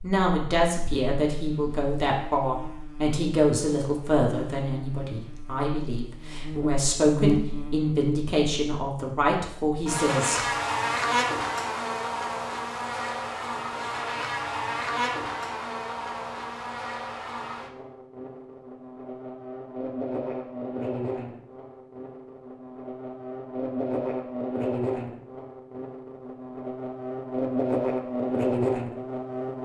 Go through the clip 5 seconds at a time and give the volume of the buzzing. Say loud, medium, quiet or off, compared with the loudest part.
quiet, loud, loud, medium, loud, loud.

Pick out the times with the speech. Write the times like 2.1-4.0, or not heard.
0.0-10.4.